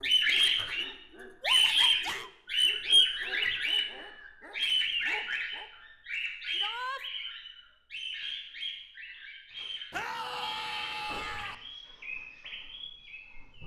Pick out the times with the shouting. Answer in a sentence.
The shouting can be heard from 1.4 to 2.3 s, from 6.5 to 7.0 s and from 9.9 to 11.6 s.